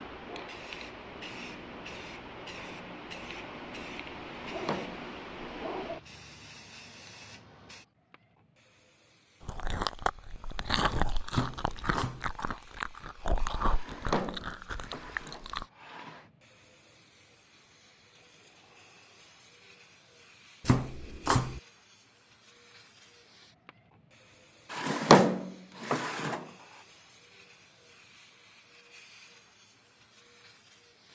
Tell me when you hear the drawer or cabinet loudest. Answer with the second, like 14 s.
25 s.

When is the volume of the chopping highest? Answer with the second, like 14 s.
21 s.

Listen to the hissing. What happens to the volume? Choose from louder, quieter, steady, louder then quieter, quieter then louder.
quieter.